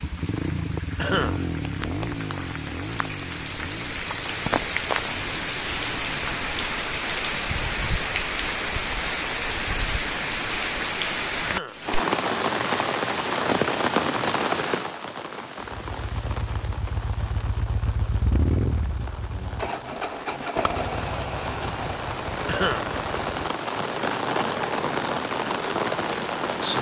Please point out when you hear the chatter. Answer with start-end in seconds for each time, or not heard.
not heard.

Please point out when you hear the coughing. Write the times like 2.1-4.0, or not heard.
0.9-1.5, 11.4-11.9, 22.4-22.9.